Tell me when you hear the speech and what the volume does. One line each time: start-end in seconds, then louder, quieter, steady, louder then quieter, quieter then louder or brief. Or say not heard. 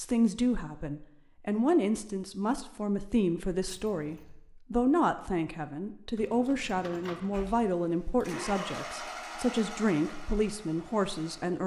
0.0-11.6 steady.